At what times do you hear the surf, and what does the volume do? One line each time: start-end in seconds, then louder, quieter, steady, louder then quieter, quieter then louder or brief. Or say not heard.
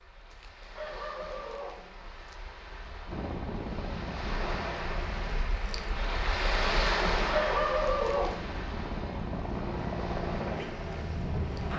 0.0-11.7 louder then quieter.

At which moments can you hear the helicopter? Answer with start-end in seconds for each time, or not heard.
3.0-11.7.